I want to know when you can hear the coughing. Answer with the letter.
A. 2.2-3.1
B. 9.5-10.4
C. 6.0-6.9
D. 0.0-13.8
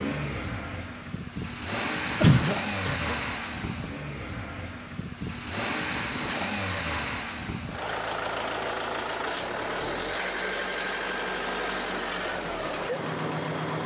A.